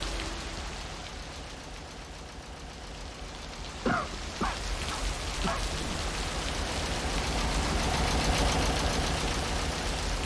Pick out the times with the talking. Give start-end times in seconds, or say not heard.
not heard.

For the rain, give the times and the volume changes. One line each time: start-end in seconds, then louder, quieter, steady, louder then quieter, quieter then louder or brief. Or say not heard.
0.0-10.2 louder.